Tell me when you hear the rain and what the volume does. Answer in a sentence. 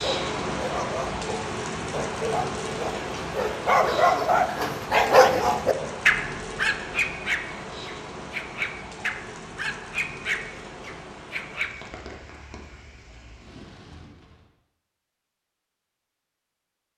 You can hear the rain from 0.0 to 14.5 s, getting quieter.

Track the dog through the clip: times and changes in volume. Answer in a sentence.
You can hear the dog from 0.0 to 11.8 s, getting louder then quieter.